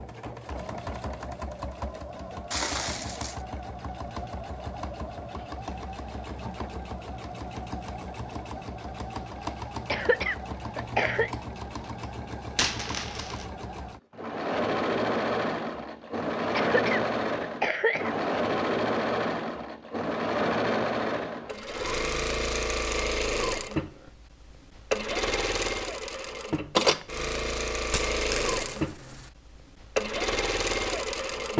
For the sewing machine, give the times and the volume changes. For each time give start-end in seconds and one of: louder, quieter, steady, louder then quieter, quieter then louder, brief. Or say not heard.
0.0-31.5 louder.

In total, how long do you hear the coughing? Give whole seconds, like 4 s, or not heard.
3 s.